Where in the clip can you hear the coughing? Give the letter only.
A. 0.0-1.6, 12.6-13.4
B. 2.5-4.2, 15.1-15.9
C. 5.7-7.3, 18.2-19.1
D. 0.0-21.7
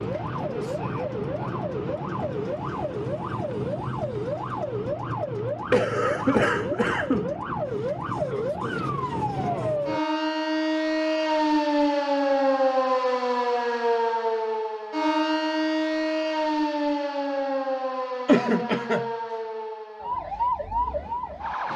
C.